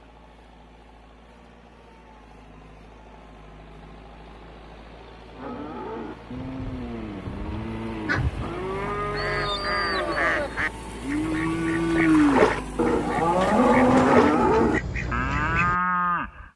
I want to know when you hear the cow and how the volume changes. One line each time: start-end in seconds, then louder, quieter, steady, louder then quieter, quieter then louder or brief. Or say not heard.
5.3-16.5 louder.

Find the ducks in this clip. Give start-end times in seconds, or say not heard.
8.1-15.8.